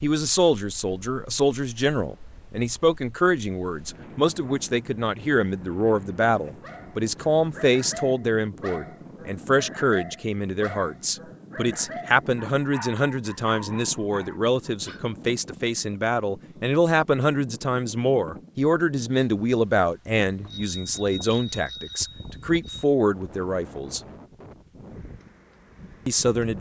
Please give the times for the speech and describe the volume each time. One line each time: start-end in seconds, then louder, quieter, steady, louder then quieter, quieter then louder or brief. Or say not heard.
0.0-24.0 steady
26.1-26.5 brief.